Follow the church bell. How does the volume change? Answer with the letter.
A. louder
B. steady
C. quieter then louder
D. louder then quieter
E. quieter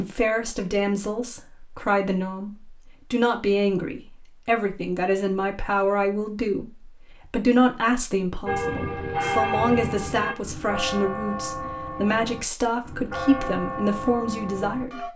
E.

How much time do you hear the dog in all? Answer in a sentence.
The dog can't be heard in this clip.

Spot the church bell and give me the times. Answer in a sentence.
You can hear the church bell from 8.4 to 15.1 s.